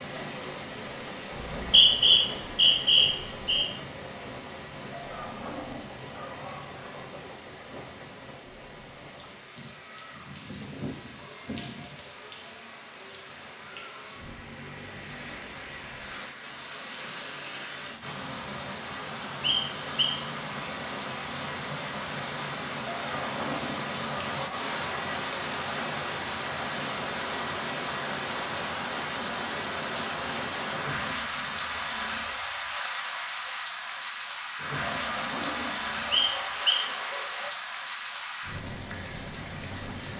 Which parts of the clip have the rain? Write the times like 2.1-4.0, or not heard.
0.0-40.1.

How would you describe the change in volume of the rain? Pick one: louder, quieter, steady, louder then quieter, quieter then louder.
louder.